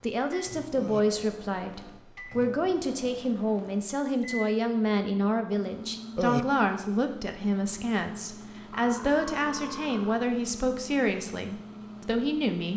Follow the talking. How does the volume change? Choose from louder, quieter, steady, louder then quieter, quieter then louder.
steady.